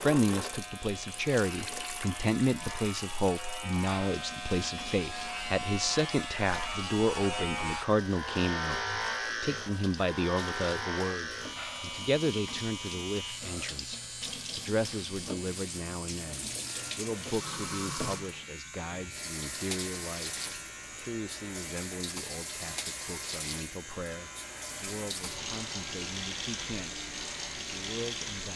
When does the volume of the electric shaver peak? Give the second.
9 s.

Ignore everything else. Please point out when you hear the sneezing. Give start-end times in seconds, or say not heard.
not heard.